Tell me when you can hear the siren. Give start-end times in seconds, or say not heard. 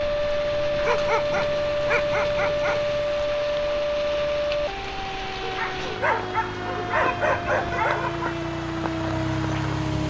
0.0-10.0.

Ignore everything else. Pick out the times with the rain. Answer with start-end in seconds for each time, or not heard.
0.0-10.0.